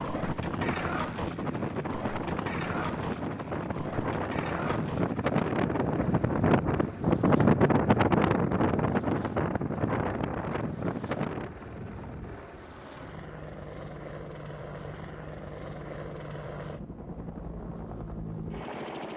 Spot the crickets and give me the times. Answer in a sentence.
You can't hear the crickets here.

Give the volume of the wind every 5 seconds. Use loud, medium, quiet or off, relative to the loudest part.
medium, loud, medium, off.